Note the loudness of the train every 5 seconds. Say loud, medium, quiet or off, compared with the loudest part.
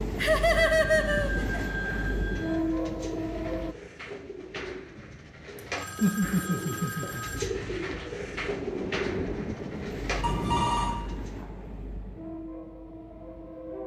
loud, loud, medium.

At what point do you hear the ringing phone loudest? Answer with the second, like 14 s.
11 s.